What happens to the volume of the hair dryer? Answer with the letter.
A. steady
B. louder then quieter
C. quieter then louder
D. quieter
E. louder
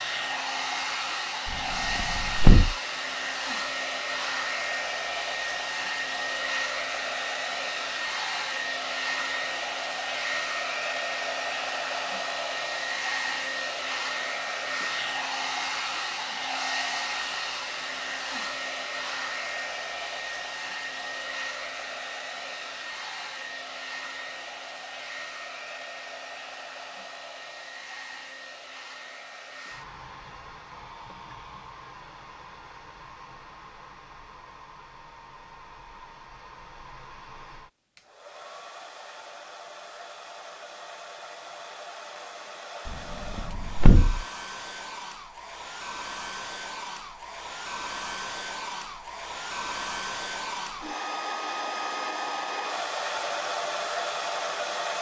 C.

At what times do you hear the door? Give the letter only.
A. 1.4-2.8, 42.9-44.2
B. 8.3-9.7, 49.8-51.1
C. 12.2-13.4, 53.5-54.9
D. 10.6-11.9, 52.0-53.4
A.